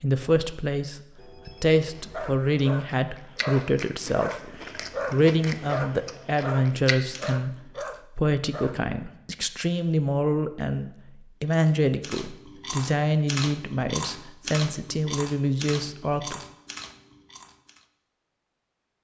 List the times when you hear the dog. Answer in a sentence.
You can hear the dog from 2.1 to 8.8 s.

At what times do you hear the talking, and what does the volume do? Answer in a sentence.
The talking can be heard from 0.0 to 16.4 s, at a steady volume.